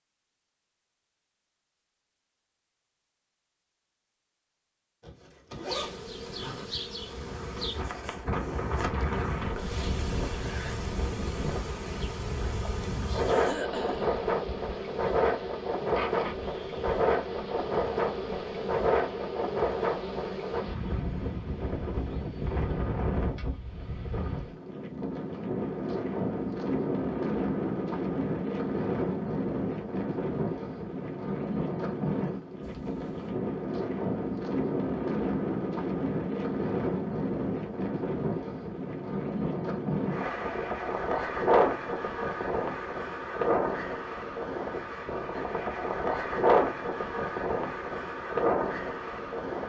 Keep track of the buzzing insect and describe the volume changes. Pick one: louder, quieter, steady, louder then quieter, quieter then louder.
steady.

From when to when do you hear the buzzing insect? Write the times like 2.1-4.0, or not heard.
5.7-20.8.